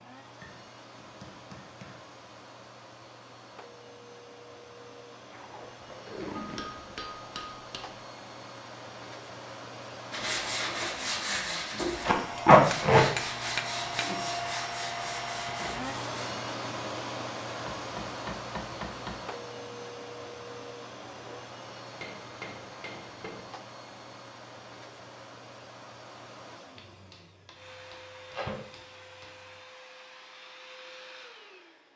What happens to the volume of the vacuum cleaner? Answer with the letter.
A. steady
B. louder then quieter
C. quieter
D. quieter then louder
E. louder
B.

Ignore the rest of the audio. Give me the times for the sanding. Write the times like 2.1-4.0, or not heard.
10.1-16.1.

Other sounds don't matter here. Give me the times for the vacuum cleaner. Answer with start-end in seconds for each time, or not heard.
0.0-31.9.